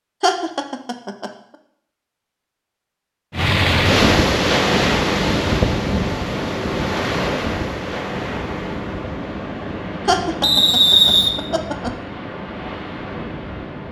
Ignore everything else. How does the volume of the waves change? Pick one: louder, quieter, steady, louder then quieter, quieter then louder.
quieter.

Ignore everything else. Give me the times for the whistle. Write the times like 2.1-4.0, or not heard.
10.4-11.3.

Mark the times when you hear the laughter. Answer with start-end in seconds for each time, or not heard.
0.2-1.3, 10.1-11.9.